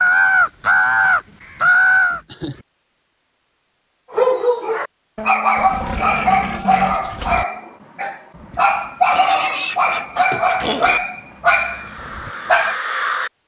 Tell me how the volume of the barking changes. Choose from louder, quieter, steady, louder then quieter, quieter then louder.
steady.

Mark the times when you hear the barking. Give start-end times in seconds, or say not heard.
4.1-12.8.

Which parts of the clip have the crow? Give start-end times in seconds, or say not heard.
0.0-2.2, 11.5-13.3.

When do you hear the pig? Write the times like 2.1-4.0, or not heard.
0.6-2.6, 5.5-7.5, 9.1-11.0.